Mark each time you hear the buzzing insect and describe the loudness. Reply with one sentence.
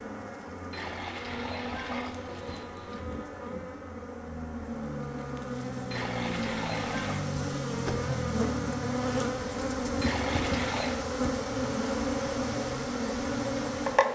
The buzzing insect can be heard from 0.0 to 14.1 s, getting louder.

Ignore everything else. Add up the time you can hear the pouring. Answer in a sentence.
The pouring can be heard for 5 seconds in total.